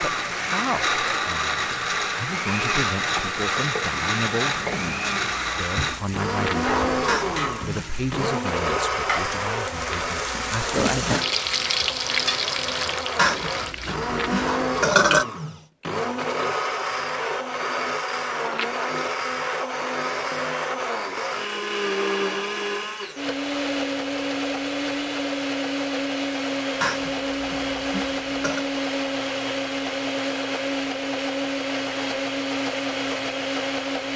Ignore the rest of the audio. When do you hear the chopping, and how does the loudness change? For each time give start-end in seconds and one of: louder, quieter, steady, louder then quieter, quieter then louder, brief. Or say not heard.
not heard.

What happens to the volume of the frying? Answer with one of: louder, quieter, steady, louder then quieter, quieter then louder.
louder.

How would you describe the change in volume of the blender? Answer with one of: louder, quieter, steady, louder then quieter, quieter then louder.
steady.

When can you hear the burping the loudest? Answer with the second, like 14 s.
15 s.